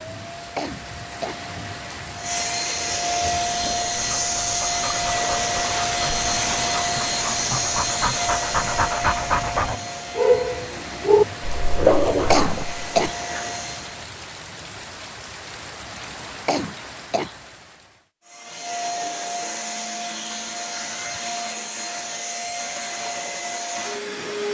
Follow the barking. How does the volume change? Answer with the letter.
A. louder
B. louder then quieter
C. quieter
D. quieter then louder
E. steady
A.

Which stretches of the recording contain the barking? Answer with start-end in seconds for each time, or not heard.
3.2-13.5.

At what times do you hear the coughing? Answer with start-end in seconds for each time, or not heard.
0.6-1.4, 12.3-13.2, 16.4-17.4.